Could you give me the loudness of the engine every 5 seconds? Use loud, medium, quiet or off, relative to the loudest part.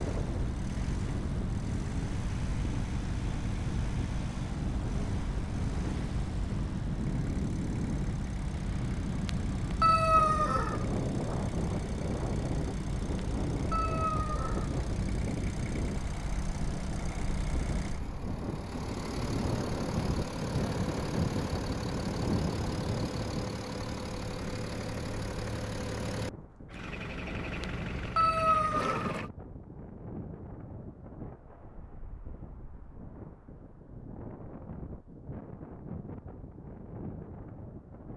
loud, loud, loud, loud, loud, loud, off, off.